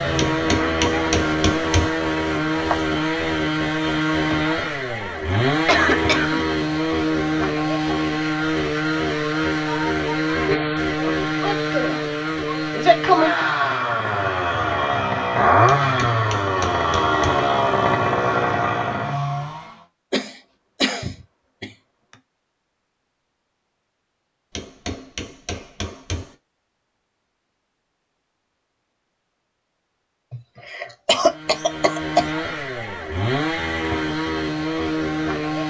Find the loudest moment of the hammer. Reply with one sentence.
The volume of the hammer peaks at 1 second.